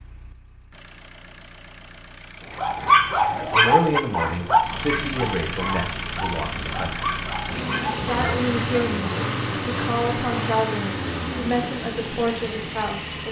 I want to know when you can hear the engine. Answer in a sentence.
You can hear the engine from 0.0 to 13.2 s.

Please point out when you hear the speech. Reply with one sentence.
You can hear the speech from 3.5 to 7.1 s and from 8.0 to 13.2 s.